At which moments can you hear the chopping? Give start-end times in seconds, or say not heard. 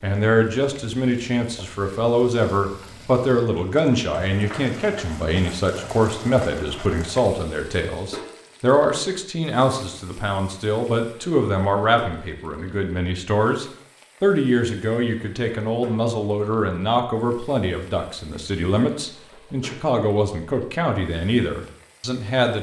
not heard.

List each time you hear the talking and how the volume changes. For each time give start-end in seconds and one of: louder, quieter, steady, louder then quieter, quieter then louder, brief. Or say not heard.
0.0-22.5 steady.